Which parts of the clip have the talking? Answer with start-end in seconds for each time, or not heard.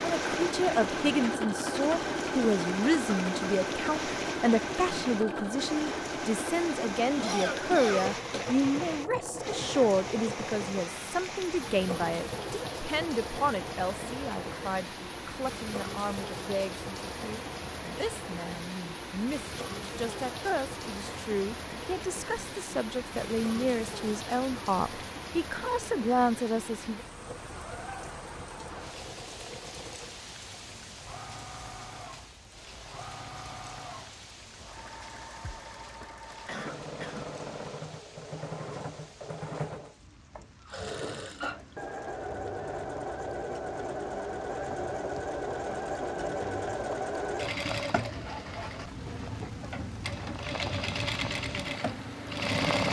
0.0-27.1.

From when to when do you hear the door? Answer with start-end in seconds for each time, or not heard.
not heard.